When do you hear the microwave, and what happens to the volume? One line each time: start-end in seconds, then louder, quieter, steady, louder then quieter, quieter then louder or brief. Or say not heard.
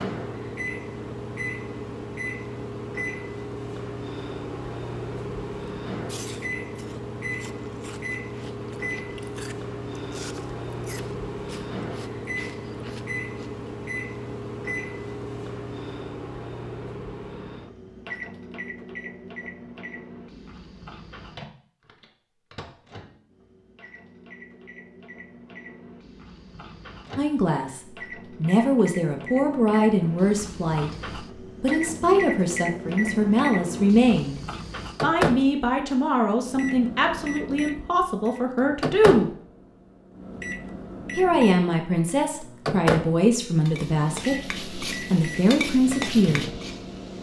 0.0-47.1 quieter then louder.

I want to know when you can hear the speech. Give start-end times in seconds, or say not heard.
27.1-34.4, 35.0-39.4, 41.1-46.5.